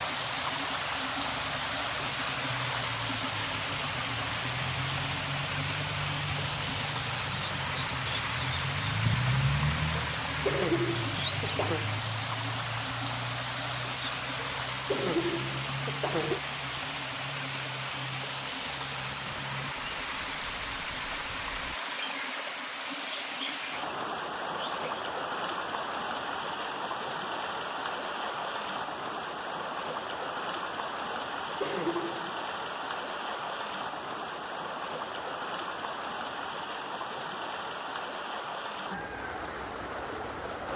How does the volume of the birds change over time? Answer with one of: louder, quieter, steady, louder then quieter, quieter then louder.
louder then quieter.